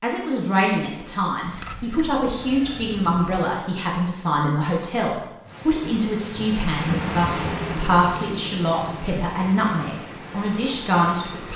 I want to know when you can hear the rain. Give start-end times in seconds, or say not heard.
5.5-11.5.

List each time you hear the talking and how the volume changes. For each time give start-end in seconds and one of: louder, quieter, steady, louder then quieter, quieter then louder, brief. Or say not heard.
0.0-11.5 steady.